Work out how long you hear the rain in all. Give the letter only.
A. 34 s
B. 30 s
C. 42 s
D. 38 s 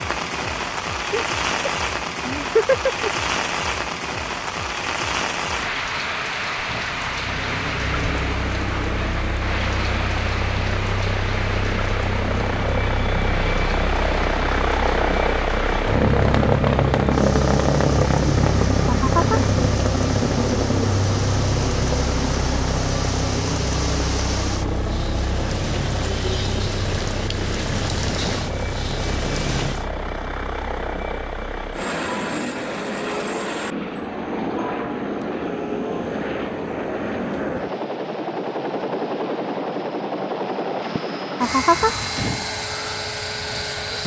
B.